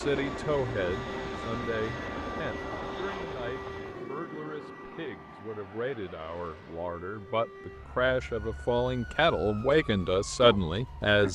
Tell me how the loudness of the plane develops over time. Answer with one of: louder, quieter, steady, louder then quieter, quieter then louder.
quieter.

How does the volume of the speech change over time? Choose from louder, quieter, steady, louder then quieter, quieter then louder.
quieter then louder.